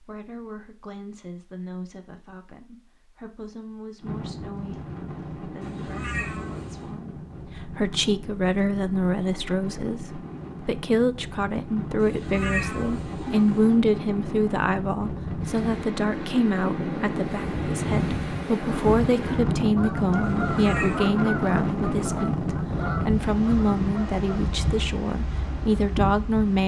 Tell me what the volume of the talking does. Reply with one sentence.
The volume of the talking goes up.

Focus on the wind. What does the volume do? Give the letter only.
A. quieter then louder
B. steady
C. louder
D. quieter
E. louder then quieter
C.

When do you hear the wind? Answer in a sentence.
You can hear the wind from 4.0 to 26.6 s.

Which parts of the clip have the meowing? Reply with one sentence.
You can hear the meowing from 5.6 to 7.0 s, from 11.9 to 13.8 s and from 20.2 to 21.1 s.